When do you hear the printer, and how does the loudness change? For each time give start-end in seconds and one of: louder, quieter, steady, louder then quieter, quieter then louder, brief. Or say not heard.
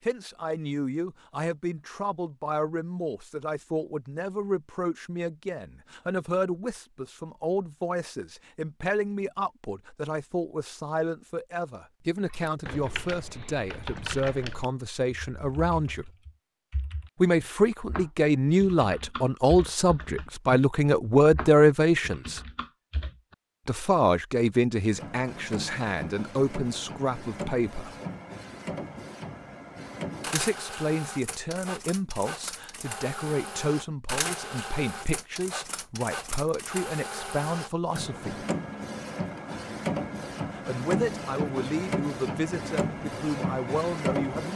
24.9-44.5 louder.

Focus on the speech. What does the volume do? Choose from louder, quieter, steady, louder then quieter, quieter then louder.
louder then quieter.